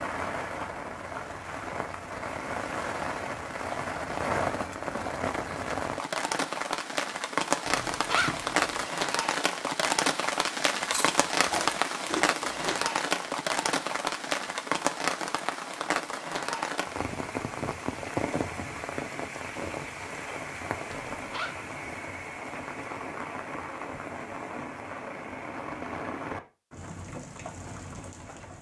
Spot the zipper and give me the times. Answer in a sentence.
The zipper can be heard from 7.7 to 8.8 s and from 20.9 to 21.6 s.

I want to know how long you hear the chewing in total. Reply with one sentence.
You can hear the chewing for 2 seconds altogether.